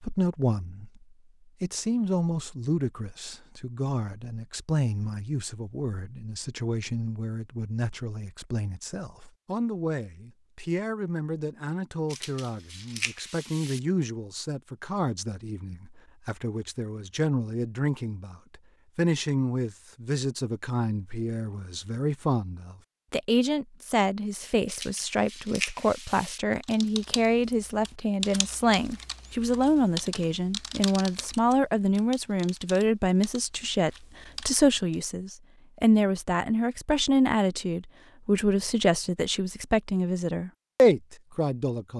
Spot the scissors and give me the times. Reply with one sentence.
You can hear the scissors from 12.1 to 13.8 s and from 24.6 to 26.4 s.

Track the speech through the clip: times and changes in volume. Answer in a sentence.
You can hear the speech briefly from 0.0 to 1.0 s; and from 1.6 to 41.9 s, getting louder.